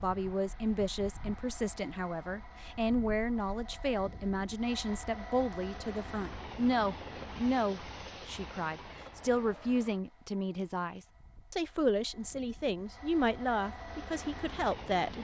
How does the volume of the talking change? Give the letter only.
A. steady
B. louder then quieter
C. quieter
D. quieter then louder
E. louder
A.